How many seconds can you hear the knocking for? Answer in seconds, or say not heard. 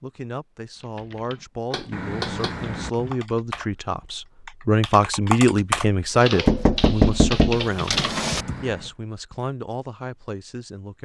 3 s.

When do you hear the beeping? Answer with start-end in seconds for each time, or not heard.
1.9-3.1, 8.2-8.9.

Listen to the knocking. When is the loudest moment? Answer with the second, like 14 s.
7 s.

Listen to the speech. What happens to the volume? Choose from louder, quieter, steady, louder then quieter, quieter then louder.
louder then quieter.